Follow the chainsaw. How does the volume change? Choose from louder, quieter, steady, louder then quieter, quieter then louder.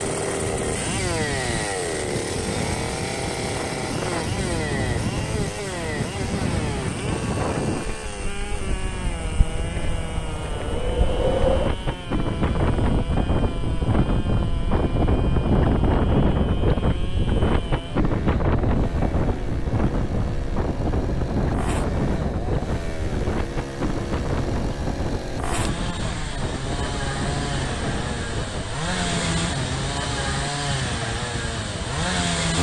quieter then louder.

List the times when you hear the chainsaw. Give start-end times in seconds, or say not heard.
0.0-32.5.